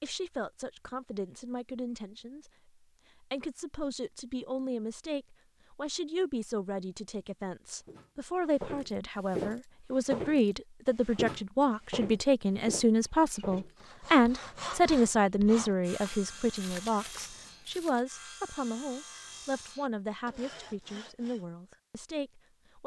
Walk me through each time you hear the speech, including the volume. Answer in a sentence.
You can hear the speech from 0.0 to 22.8 s, getting louder then quieter.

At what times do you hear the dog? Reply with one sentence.
The dog can't be heard in this clip.